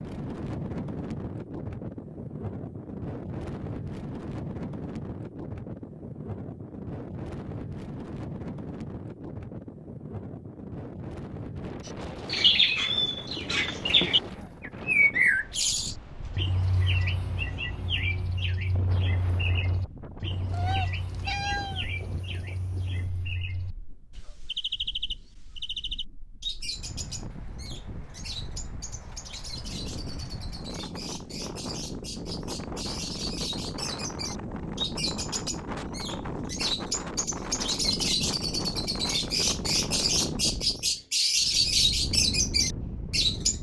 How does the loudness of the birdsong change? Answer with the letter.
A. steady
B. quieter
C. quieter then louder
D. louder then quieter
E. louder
C.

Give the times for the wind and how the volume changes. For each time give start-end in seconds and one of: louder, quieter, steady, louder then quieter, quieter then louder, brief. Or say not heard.
0.0-43.5 quieter then louder.